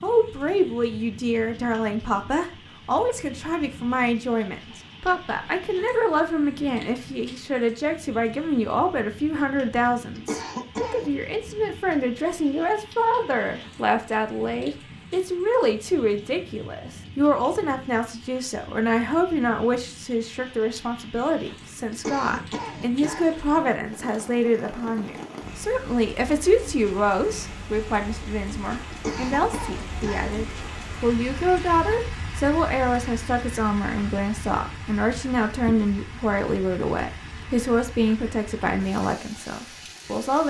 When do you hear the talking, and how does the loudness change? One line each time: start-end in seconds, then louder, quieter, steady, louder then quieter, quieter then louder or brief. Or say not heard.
0.0-40.4 steady.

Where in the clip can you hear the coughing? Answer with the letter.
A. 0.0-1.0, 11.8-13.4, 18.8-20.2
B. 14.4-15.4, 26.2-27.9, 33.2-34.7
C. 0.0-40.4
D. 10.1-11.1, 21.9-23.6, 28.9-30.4
D.